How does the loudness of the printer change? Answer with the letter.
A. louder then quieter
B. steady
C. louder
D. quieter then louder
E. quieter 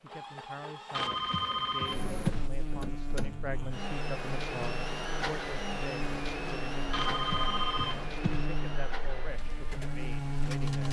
A.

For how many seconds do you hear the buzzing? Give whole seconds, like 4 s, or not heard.
9 s.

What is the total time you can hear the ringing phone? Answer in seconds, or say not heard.
3 s.